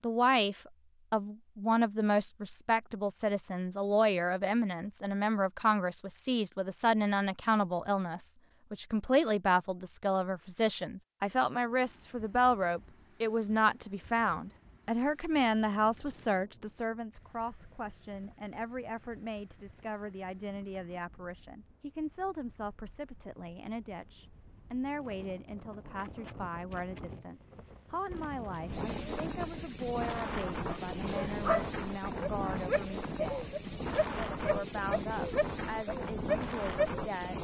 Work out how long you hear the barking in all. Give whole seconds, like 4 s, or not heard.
7 s.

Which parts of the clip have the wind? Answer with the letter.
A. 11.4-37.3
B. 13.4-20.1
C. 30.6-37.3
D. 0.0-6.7
A.